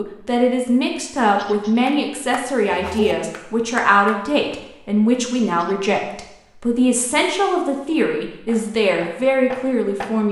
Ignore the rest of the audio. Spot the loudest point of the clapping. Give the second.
3 s.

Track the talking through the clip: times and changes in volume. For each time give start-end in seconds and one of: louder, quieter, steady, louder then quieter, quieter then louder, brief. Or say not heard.
0.0-10.2 steady.